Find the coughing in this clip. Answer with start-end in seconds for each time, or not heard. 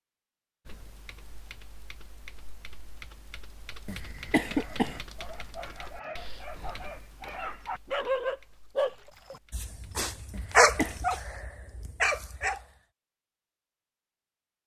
3.9-5.0, 10.3-11.1.